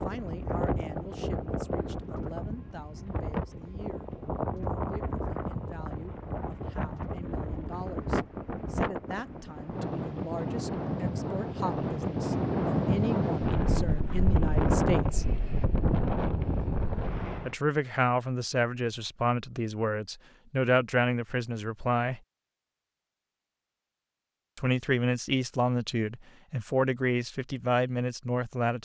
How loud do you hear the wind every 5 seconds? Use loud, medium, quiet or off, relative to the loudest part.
medium, medium, loud, loud, off, off.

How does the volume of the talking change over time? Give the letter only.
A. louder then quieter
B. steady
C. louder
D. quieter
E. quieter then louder
C.